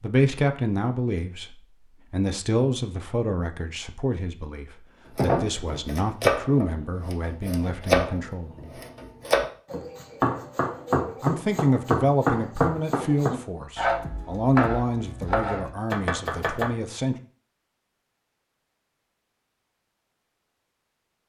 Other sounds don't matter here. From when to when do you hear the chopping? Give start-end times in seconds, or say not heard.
5.2-16.7.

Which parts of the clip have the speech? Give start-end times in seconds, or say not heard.
0.0-8.8, 11.2-17.1.